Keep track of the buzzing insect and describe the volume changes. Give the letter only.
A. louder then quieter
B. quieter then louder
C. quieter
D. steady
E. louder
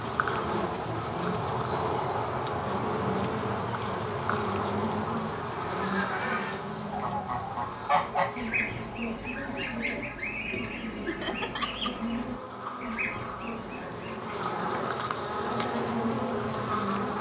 B.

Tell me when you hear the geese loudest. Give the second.
8 s.